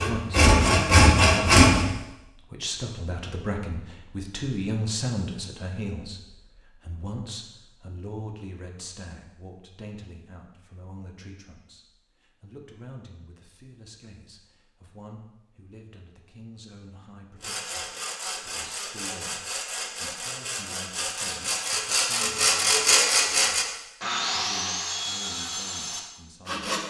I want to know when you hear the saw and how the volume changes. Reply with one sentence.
You can hear the saw briefly from 0.0 to 1.9 s; and from 17.4 to 26.8 s, getting louder then quieter.